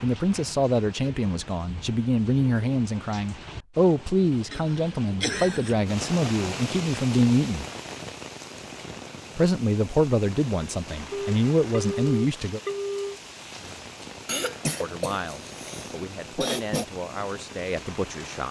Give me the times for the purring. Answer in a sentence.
The purring can't be heard in this clip.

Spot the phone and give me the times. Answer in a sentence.
You can hear the phone from 11.1 to 13.2 s.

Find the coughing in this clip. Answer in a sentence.
The coughing can be heard from 4.5 to 5.8 s and from 14.2 to 16.9 s.